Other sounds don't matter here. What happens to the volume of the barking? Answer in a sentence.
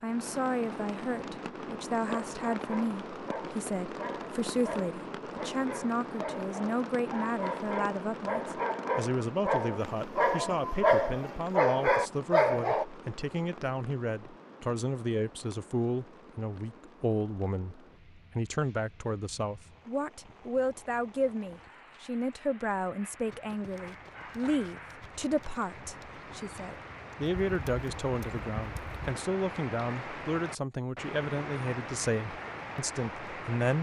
The volume of the barking goes up.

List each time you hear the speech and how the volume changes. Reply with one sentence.
The speech can be heard from 0.0 to 33.7 s, at a steady volume.